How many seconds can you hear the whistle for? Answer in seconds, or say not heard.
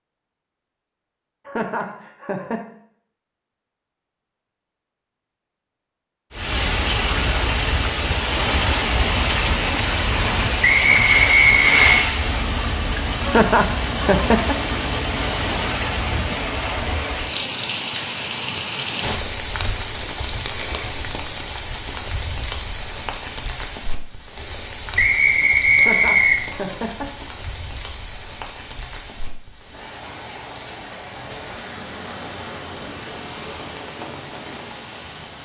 3 s.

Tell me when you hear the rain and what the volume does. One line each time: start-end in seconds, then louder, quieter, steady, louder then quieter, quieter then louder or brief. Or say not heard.
6.3-35.4 quieter.